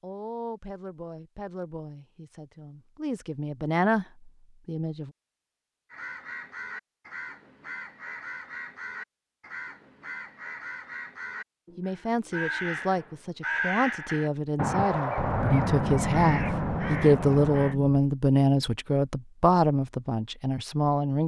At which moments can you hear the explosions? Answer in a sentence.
The explosions can be heard from 15.2 to 17.9 s.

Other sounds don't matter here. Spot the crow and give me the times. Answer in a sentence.
You can hear the crow from 5.9 to 17.8 s.